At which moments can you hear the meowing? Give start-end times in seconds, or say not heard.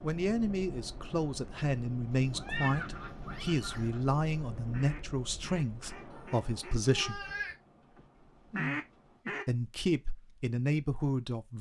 2.1-3.9, 6.1-7.5.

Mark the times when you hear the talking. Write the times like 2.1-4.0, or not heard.
0.0-7.2, 9.4-11.5.